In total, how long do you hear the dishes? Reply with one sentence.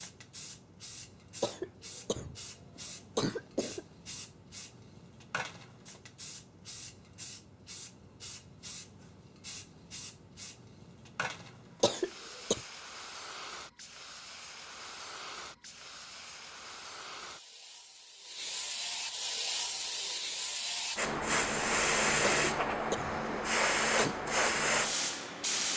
The dishes can't be heard in this clip.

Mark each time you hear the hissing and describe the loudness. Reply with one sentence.
The hissing can be heard from 0.0 to 25.7 s, getting louder.